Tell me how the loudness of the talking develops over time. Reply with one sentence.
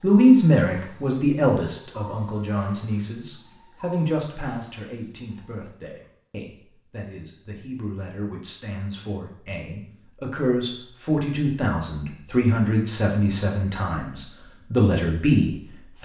The loudness of the talking goes down, then up.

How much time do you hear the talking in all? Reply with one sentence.
You can hear the talking for 16 seconds altogether.